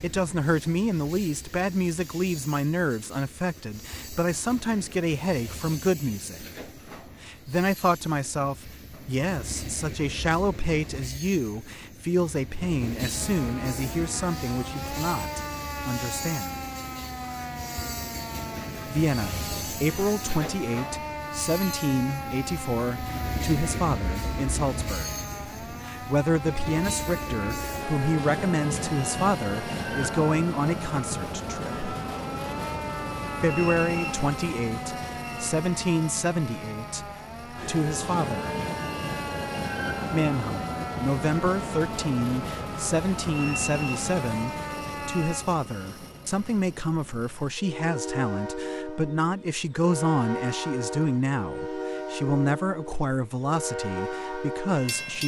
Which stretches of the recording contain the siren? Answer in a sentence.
You can hear the siren from 13.1 to 45.5 s.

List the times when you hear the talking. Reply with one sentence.
The talking can be heard from 0.0 to 6.5 s, from 7.2 to 16.6 s, from 18.9 to 31.8 s, from 33.4 to 38.5 s and from 40.1 to 55.2 s.